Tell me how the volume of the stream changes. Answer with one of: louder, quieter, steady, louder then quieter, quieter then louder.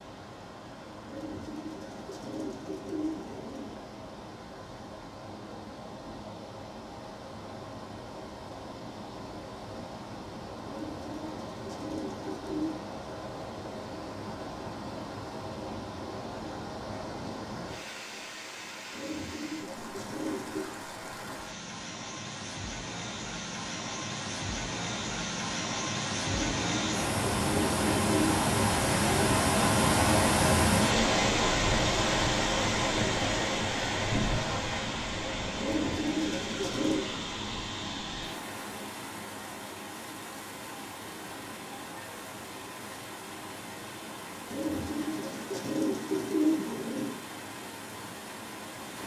louder then quieter.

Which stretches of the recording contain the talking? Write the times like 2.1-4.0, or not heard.
not heard.